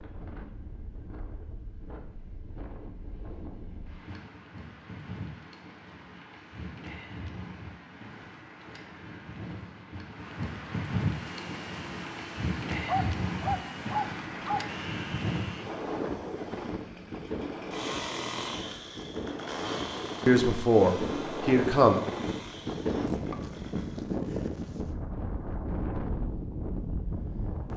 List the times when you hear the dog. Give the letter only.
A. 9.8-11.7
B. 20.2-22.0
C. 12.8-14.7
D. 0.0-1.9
C.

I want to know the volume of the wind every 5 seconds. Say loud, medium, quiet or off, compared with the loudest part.
quiet, medium, loud, loud, loud, loud.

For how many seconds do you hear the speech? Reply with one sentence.
You can hear the speech for 2 seconds altogether.